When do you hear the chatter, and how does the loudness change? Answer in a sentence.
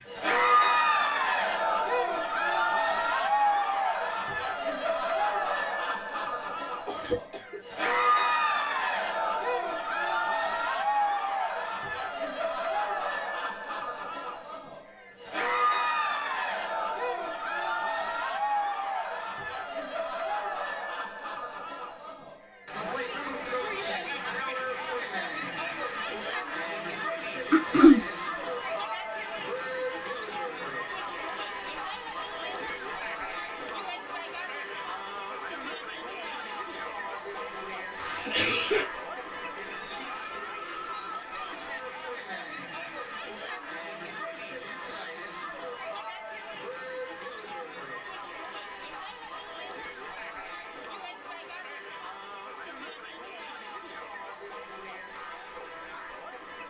The chatter can be heard from 0.0 to 56.6 s, getting quieter.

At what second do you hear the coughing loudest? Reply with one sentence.
The volume of the coughing peaks at 28 seconds.